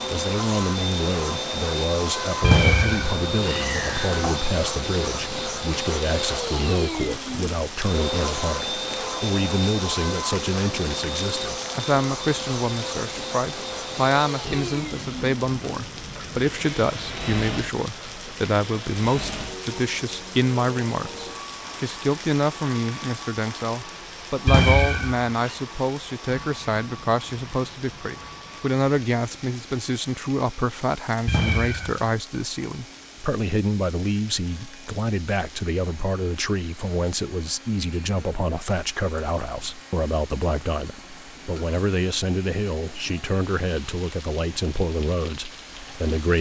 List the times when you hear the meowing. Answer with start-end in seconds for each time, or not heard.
2.4-4.5, 24.4-25.3, 31.2-32.0.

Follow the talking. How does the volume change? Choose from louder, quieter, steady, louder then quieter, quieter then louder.
steady.